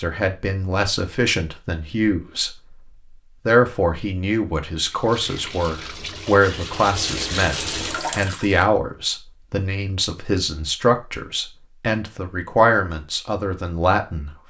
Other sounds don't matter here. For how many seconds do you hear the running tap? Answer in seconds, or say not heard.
4 s.